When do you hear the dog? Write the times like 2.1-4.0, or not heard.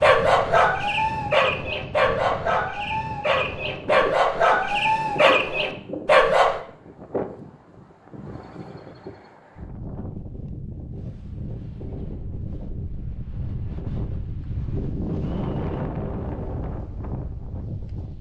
0.0-6.6.